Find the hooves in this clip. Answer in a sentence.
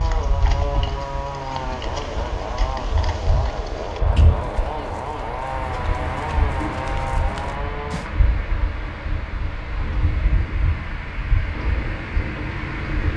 You can hear the hooves from 0.0 to 8.1 s.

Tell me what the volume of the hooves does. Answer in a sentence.
The volume of the hooves stays about the same.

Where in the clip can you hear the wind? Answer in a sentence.
You can hear the wind from 0.0 to 13.1 s.